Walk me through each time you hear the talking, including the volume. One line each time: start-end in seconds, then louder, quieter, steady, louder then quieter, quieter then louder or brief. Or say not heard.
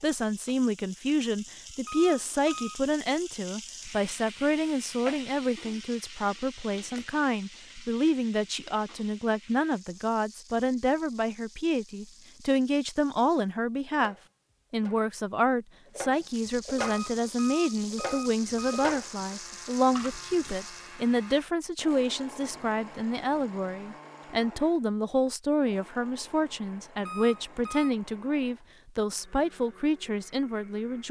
0.0-31.0 steady.